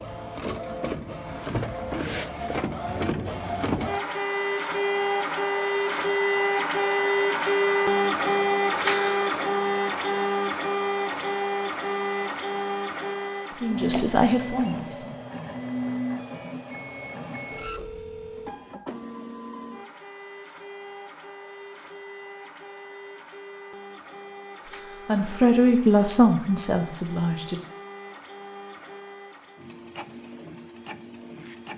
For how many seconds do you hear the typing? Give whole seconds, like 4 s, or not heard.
not heard.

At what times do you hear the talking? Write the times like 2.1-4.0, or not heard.
13.5-15.2, 25.1-27.6.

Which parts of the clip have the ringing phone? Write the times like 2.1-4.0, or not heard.
17.5-18.6.